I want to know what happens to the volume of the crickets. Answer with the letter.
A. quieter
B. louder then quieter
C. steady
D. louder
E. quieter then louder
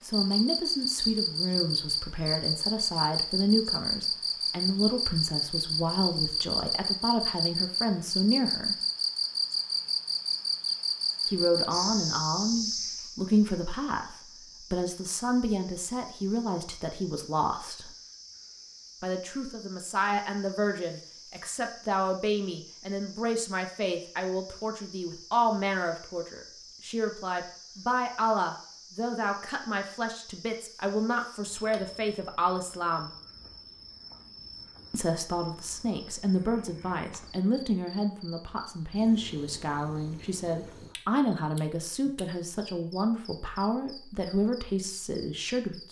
A.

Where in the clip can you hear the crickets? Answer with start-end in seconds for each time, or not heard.
0.0-45.8.